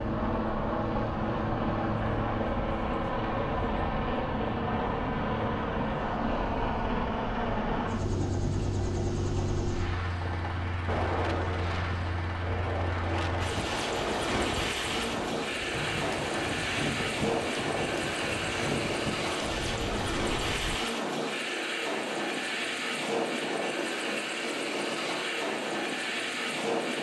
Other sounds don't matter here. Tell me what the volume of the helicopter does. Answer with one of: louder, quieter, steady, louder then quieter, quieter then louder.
steady.